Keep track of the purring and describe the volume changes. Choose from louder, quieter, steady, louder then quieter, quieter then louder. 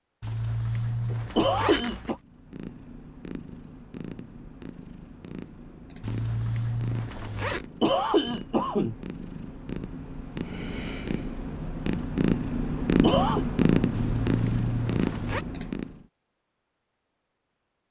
louder.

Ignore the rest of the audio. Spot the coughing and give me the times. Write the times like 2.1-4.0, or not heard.
1.1-2.1, 7.5-8.9, 13.0-13.4.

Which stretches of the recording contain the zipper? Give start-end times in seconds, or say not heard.
0.2-2.2, 6.0-7.7, 13.9-15.4.